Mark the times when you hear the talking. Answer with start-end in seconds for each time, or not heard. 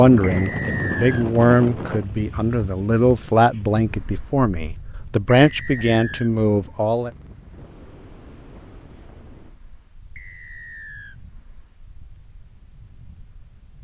0.0-7.1.